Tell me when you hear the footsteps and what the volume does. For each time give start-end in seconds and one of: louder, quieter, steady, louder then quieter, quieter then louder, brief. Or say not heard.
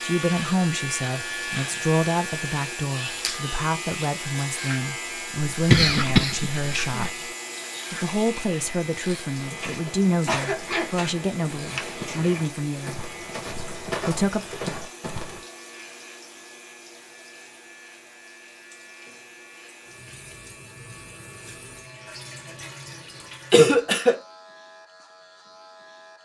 9.3-15.4 louder.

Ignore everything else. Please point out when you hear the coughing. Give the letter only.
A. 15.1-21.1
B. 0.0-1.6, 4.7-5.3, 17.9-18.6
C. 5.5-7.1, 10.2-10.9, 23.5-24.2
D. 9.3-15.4
C.